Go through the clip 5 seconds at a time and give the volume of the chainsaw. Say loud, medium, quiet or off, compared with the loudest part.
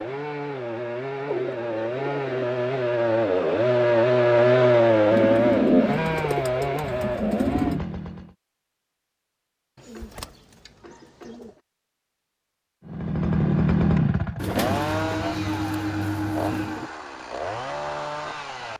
loud, loud, loud, medium.